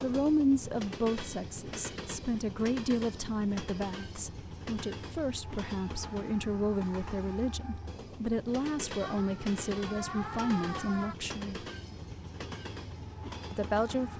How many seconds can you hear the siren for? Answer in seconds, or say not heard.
2 s.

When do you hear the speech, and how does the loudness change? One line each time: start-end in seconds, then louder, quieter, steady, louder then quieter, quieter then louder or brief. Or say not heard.
0.0-11.7 steady
13.5-14.1 brief.